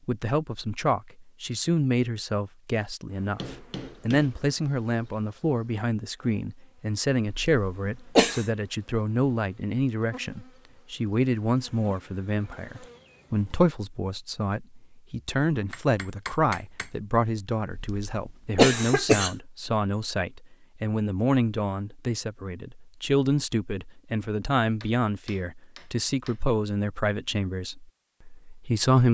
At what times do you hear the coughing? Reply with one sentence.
The coughing can be heard from 7.2 to 8.4 s and from 17.7 to 19.3 s.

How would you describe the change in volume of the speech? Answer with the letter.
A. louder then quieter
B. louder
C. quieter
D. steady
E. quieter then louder
D.